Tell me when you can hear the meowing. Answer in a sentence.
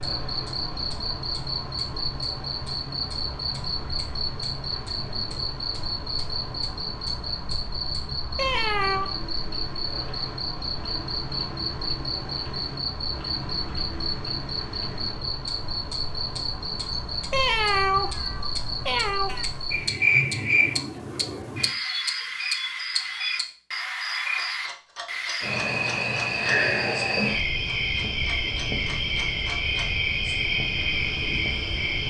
You can hear the meowing from 8.3 to 9.1 s and from 17.3 to 19.4 s.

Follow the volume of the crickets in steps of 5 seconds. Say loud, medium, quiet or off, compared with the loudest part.
medium, medium, medium, medium, loud, loud, loud.